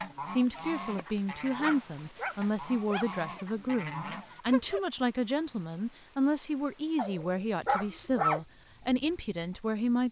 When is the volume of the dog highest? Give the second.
8 s.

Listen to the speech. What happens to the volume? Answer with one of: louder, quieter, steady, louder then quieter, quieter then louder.
steady.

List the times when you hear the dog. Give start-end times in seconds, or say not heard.
0.4-3.1, 7.0-8.4.